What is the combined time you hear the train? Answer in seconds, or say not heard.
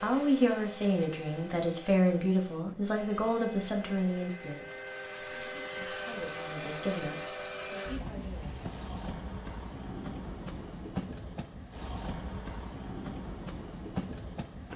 15 s.